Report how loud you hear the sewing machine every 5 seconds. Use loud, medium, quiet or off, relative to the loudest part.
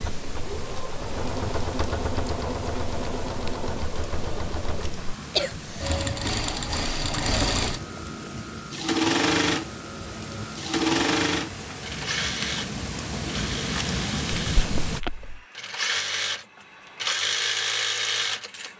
medium, loud, loud, loud.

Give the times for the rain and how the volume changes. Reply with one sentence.
You can hear the rain from 0.0 to 15.0 s, getting louder.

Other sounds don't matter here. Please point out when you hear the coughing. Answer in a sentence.
You can hear the coughing from 5.0 to 5.9 s and from 14.3 to 15.4 s.